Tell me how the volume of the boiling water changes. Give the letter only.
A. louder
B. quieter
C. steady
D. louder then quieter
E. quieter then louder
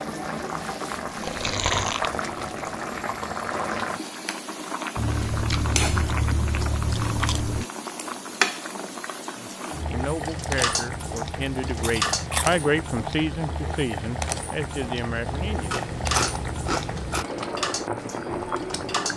C.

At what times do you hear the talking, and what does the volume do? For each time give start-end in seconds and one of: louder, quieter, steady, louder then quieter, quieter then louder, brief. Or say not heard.
9.3-15.7 louder then quieter.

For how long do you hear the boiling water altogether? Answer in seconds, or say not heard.
19 s.